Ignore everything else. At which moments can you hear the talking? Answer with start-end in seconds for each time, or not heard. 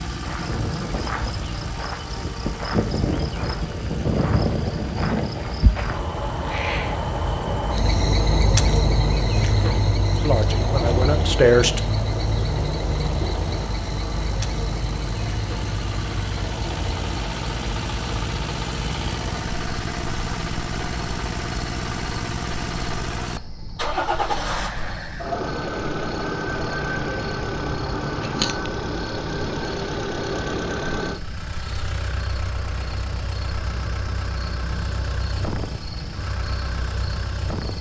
10.2-11.8.